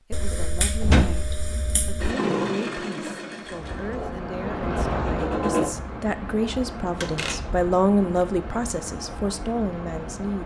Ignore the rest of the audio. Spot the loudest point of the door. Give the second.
1 s.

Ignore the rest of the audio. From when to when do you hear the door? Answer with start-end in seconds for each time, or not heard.
0.8-1.2, 7.0-7.7.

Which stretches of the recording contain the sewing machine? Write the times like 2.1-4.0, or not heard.
2.0-5.7.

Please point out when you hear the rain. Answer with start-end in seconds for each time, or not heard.
3.5-10.4.